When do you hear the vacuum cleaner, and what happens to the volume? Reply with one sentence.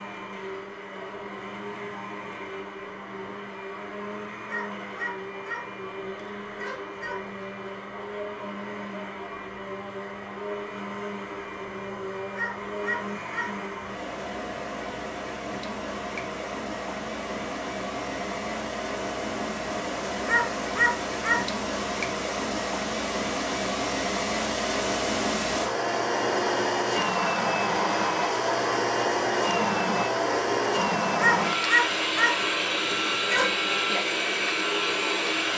You can hear the vacuum cleaner from 0.0 to 35.5 s, getting louder.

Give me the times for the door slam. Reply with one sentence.
You can't hear the door slam here.